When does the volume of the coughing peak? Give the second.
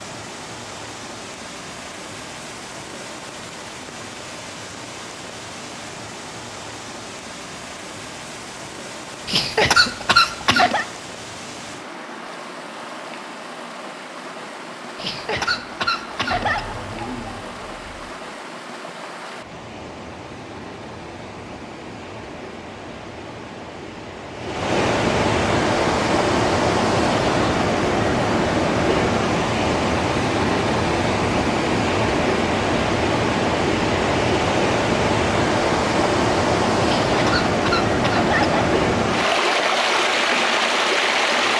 10 s.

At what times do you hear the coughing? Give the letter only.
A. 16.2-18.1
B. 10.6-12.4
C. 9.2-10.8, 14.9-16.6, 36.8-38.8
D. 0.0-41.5
C.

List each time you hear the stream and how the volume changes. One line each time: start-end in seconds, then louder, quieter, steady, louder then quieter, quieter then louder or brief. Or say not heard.
0.0-41.5 louder.